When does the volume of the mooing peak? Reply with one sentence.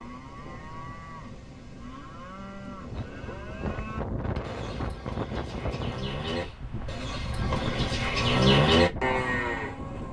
The loudest moment of the mooing is at 9 seconds.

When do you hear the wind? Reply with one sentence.
The wind can be heard from 2.7 to 10.0 s.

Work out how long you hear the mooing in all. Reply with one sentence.
The mooing can be heard for 10 seconds in total.